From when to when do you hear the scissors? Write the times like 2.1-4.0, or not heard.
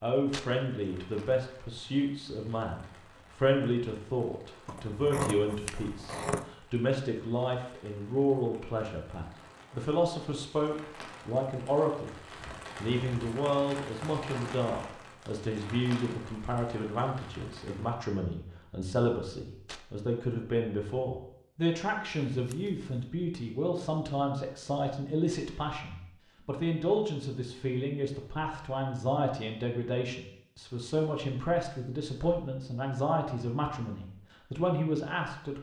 4.7-6.5, 22.3-22.9.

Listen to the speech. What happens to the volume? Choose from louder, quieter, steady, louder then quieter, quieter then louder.
steady.